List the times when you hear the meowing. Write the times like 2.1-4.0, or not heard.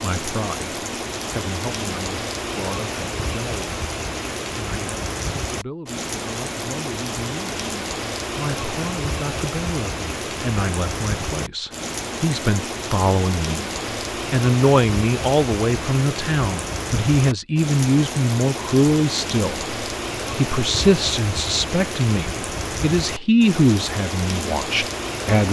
not heard.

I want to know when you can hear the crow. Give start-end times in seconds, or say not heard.
not heard.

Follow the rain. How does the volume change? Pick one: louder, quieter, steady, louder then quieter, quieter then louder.
steady.